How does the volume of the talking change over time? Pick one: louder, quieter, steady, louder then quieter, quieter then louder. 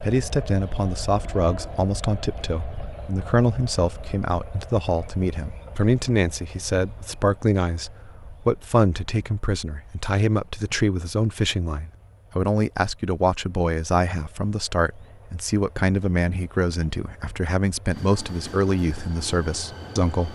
steady.